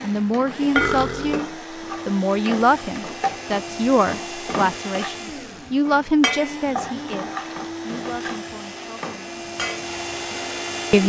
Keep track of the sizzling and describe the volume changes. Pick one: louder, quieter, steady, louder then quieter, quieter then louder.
quieter.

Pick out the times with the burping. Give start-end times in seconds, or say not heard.
0.8-1.4.